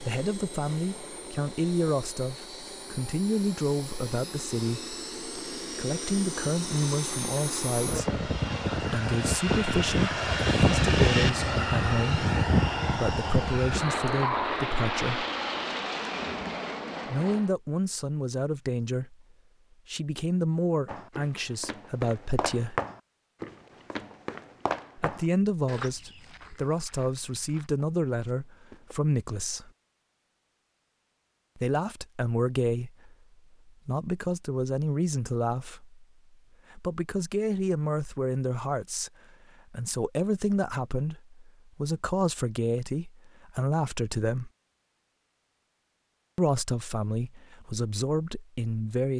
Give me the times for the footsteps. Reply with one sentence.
You can hear the footsteps from 20.9 to 28.9 s.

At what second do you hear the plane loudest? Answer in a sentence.
The loudest moment of the plane is at 11 seconds.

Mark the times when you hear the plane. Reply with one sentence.
You can hear the plane from 0.0 to 17.6 s.